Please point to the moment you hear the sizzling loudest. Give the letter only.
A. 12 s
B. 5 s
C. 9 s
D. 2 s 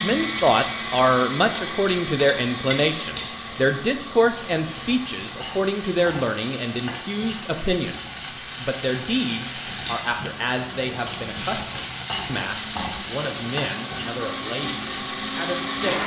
A.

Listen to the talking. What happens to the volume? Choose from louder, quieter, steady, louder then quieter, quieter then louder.
quieter.